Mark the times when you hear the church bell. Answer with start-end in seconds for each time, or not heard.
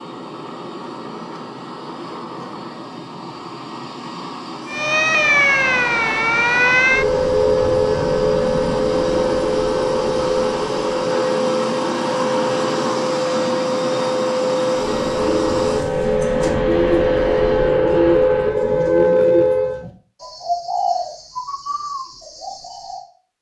not heard.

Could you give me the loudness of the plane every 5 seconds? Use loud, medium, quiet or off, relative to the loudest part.
medium, medium, loud, medium, off.